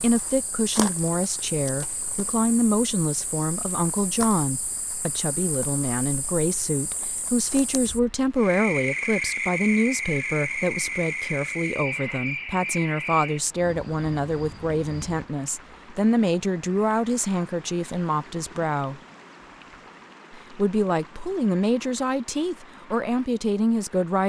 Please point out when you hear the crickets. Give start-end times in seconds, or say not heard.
0.0-15.3.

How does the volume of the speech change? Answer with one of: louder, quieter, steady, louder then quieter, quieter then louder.
steady.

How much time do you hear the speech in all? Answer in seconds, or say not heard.
23 s.